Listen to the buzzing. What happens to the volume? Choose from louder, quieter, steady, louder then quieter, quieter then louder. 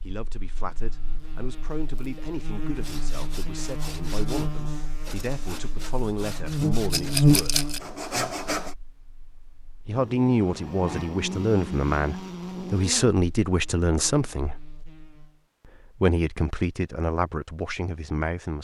louder then quieter.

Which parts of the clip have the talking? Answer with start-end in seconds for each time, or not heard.
0.0-7.5, 9.8-14.6, 16.0-18.5.